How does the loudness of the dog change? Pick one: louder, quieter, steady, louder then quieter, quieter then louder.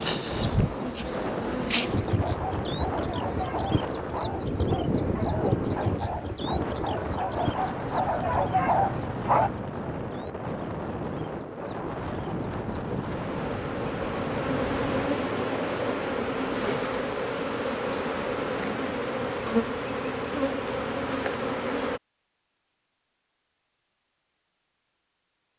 louder.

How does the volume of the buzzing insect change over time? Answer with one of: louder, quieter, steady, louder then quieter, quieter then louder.
quieter then louder.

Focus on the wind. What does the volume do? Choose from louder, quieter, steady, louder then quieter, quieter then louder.
steady.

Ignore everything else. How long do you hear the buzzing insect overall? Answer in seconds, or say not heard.
22 s.